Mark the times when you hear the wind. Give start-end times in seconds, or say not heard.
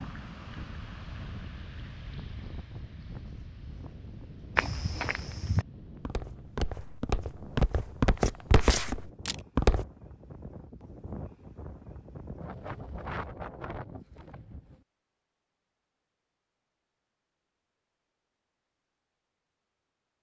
0.0-14.8.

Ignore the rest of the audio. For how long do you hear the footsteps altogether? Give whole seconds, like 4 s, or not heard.
5 s.